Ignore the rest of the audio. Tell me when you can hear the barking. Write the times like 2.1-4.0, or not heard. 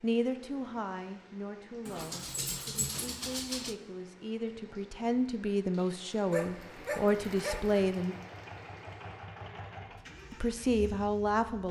1.9-3.8, 6.3-7.8.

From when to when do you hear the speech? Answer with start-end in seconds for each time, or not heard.
0.0-8.2, 10.3-11.6.